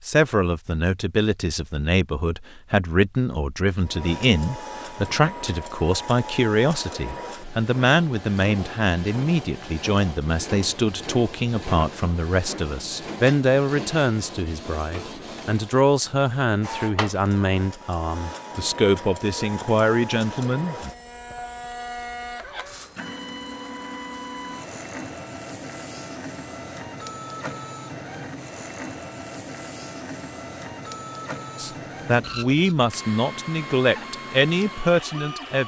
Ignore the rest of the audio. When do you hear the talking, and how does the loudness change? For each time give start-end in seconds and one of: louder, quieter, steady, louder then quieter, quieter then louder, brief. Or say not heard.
0.1-20.9 steady
31.6-35.6 steady.